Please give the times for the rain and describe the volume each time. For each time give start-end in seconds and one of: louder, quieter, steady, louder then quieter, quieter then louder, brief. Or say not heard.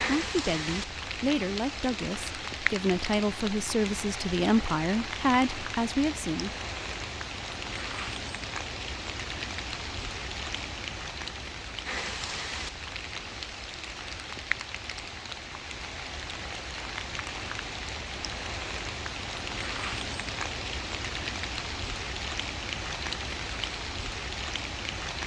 0.0-25.2 steady.